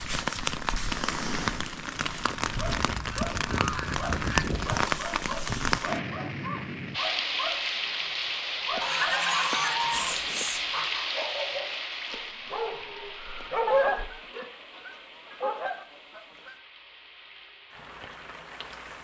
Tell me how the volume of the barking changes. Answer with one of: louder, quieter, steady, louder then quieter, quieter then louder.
steady.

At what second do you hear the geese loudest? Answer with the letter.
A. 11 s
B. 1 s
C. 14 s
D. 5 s
C.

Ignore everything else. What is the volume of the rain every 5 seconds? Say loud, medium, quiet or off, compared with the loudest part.
loud, loud, medium, quiet.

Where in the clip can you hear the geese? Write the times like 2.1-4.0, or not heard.
2.6-4.7, 8.8-10.8, 13.7-16.6.